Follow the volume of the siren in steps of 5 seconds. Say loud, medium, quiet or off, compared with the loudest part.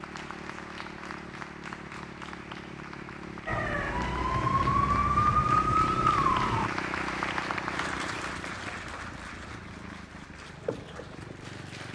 loud, loud, off.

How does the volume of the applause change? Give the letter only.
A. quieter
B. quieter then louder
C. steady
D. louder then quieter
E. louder
D.